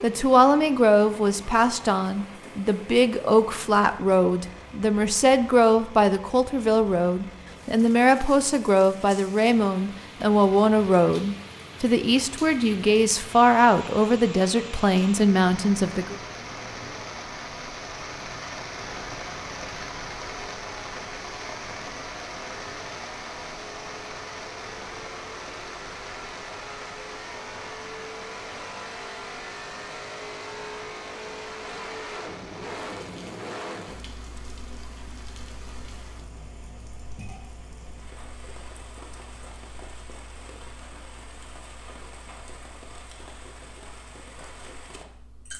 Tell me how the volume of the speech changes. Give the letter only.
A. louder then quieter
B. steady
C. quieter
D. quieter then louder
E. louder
B.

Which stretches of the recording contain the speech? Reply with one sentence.
You can hear the speech from 0.0 to 16.1 s.